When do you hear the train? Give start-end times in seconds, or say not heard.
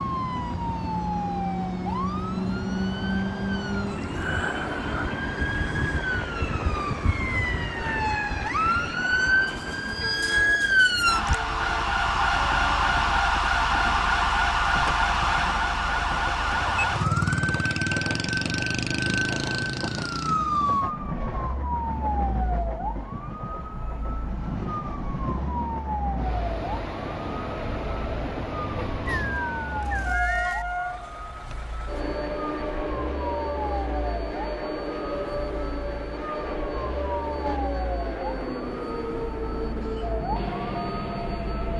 0.0-41.7.